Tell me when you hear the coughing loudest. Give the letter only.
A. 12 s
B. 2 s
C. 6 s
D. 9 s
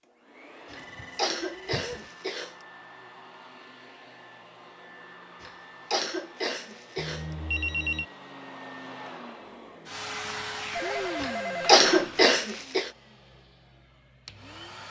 A.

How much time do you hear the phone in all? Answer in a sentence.
You can hear the phone for 4 seconds altogether.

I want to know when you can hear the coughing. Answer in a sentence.
You can hear the coughing from 0.7 to 2.5 s, from 5.4 to 7.2 s and from 11.2 to 12.9 s.